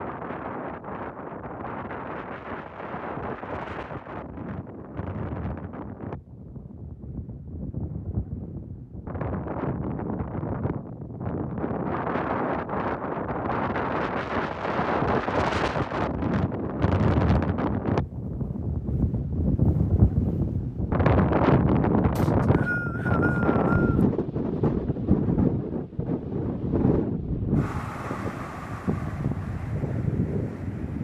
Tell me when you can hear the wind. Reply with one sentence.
You can hear the wind from 0.0 to 30.9 s.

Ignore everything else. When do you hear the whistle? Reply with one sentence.
You can hear the whistle from 22.1 to 24.1 s.